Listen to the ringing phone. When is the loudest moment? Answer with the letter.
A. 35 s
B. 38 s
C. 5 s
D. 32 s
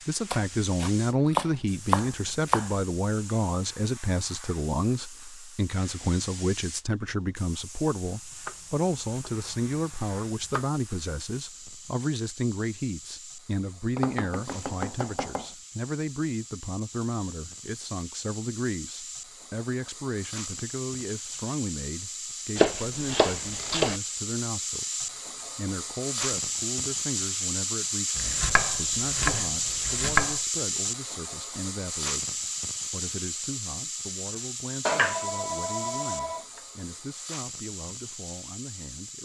A.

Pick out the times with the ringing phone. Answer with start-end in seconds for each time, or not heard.
34.9-36.5.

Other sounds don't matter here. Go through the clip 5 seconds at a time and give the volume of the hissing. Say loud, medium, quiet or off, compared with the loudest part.
quiet, quiet, quiet, quiet, medium, loud, loud, medium.